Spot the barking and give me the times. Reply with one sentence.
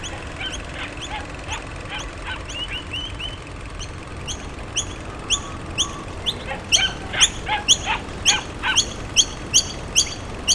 The barking can be heard from 0.1 to 2.9 s and from 6.5 to 8.8 s.